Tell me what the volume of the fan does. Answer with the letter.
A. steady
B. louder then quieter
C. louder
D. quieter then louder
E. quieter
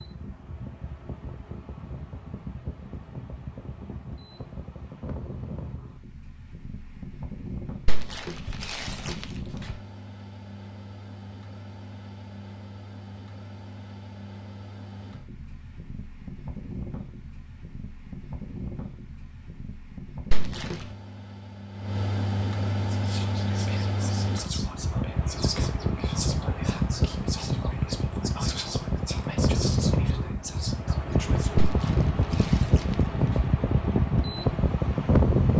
C.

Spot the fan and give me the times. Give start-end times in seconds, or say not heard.
0.0-35.5.